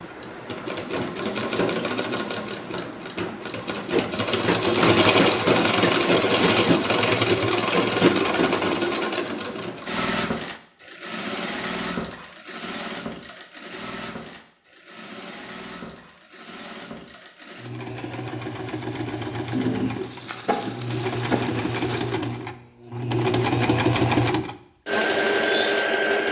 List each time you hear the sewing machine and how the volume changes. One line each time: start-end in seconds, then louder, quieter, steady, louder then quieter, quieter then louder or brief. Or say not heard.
0.0-26.2 quieter then louder.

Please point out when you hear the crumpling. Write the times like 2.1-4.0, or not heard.
19.5-22.1.